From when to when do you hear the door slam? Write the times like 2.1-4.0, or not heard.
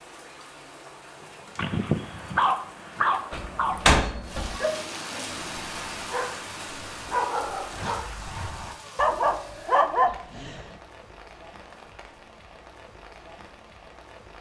3.3-4.5.